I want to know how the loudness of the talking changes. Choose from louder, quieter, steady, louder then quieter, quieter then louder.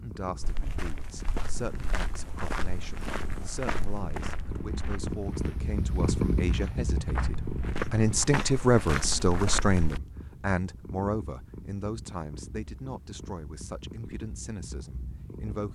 louder then quieter.